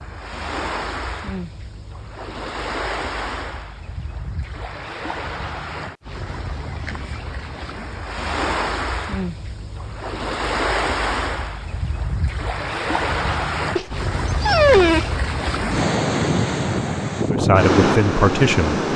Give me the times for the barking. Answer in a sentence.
You can hear the barking from 13.8 to 15.2 s.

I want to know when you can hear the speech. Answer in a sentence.
You can hear the speech from 17.2 to 18.8 s.